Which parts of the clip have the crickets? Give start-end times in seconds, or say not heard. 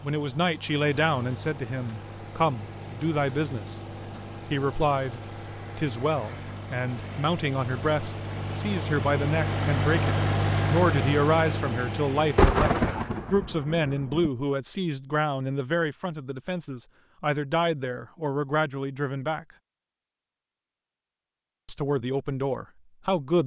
not heard.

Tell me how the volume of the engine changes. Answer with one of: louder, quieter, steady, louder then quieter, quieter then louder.
louder.